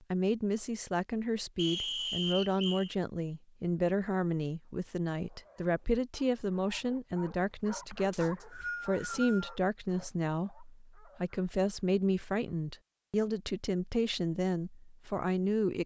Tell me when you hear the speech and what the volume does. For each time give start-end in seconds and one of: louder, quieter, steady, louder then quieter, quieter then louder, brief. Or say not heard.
0.1-15.8 steady.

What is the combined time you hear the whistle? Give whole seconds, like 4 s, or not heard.
3 s.